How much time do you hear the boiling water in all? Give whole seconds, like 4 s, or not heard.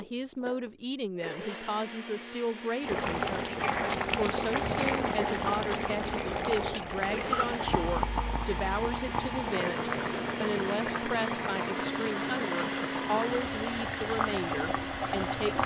13 s.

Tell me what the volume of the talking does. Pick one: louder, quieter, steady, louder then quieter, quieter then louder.
steady.